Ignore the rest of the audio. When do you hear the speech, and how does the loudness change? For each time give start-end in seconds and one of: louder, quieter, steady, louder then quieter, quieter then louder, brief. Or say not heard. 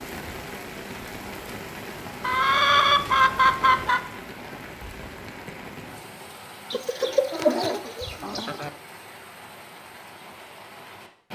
not heard.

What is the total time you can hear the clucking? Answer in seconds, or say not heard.
4 s.